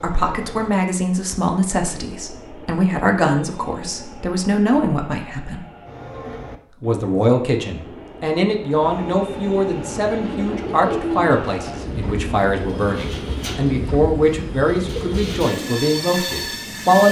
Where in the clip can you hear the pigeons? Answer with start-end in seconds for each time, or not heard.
9.9-15.7.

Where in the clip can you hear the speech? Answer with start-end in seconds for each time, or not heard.
0.0-5.7, 6.8-17.0.